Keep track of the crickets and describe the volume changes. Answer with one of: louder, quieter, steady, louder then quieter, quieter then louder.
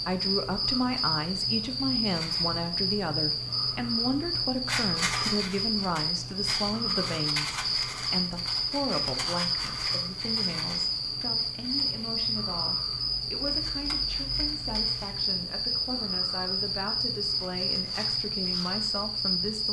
steady.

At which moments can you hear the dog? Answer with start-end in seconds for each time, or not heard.
not heard.